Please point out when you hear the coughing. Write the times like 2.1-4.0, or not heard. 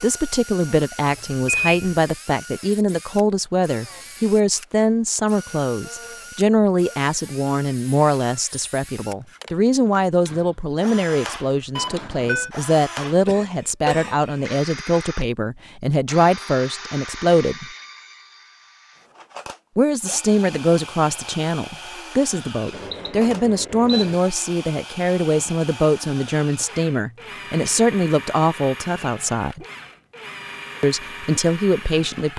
13.1-14.6.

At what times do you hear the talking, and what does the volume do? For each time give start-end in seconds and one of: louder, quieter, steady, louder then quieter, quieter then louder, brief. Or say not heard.
0.0-17.6 steady
19.8-29.6 steady
30.8-32.3 brief.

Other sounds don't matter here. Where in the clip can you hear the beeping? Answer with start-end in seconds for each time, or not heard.
1.1-1.8, 11.8-12.5, 22.7-24.1.